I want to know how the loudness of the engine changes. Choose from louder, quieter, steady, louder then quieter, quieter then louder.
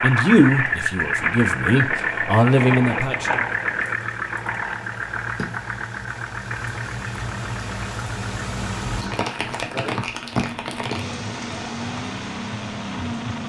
quieter then louder.